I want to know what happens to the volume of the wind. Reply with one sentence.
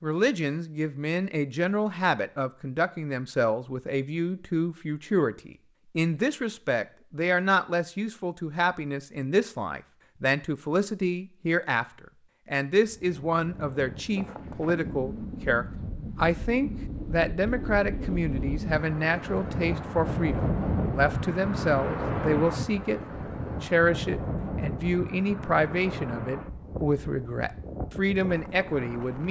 The loudness of the wind goes up, then down.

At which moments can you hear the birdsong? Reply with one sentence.
You can't hear the birdsong here.